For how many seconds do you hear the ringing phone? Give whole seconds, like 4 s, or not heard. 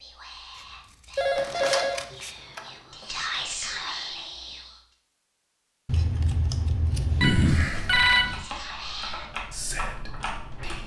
3 s.